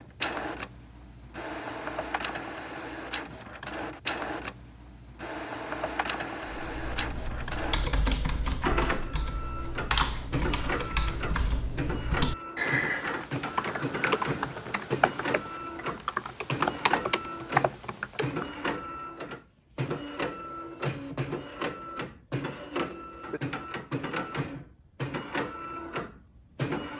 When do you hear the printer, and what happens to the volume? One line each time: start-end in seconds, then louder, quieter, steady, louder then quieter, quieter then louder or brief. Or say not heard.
0.0-26.9 steady.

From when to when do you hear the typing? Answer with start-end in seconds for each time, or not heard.
6.6-18.5.